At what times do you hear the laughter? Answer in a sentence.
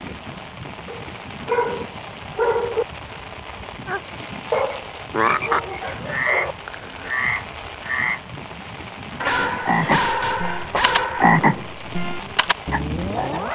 You can't hear the laughter here.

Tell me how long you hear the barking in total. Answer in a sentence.
You can hear the barking for 6 seconds altogether.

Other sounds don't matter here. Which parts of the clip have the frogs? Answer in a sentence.
You can hear the frogs from 3.9 to 13.4 s.